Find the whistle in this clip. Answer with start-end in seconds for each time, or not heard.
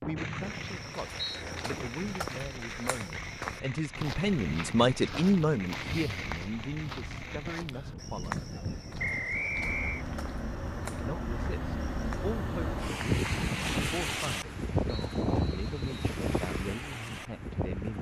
0.1-1.4, 8.9-10.1, 15.0-16.0.